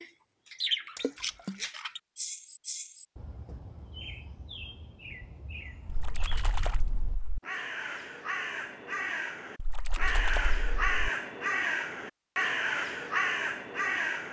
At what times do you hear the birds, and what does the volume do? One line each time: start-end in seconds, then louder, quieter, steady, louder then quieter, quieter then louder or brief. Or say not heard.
0.0-14.2 quieter then louder.